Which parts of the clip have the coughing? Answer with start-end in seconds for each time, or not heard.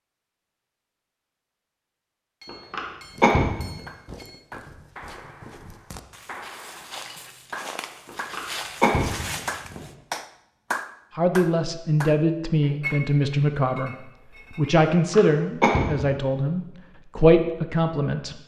2.5-3.7, 8.1-9.8, 15.1-16.1.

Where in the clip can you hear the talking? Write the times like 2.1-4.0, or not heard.
11.2-18.4.